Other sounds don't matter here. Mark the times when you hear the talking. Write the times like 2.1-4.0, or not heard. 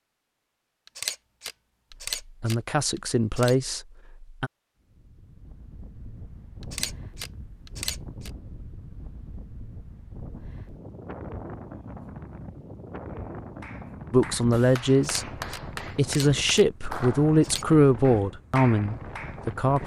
2.4-4.5, 14.1-15.2, 15.9-19.8.